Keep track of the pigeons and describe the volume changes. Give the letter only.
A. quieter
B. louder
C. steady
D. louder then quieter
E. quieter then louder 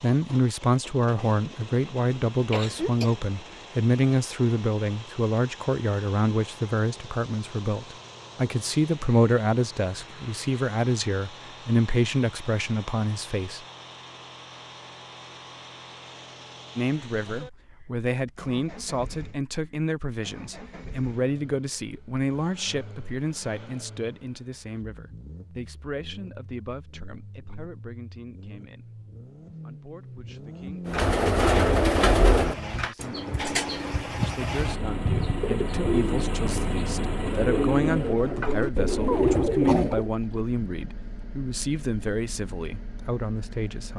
E.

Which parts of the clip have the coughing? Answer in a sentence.
The coughing can be heard from 2.5 to 3.1 s and from 39.0 to 40.0 s.